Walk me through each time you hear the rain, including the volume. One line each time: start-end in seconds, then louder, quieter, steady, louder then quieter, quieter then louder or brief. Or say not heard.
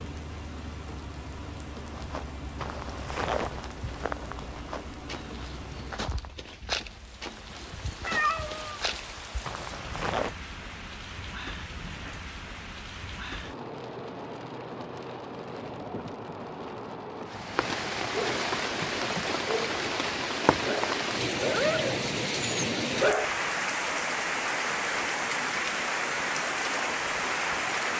0.0-27.9 louder.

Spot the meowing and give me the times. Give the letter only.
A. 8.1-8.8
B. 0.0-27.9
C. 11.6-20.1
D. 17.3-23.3
A.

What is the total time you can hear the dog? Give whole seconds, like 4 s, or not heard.
6 s.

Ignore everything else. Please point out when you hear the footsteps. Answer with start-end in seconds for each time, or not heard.
1.9-10.3.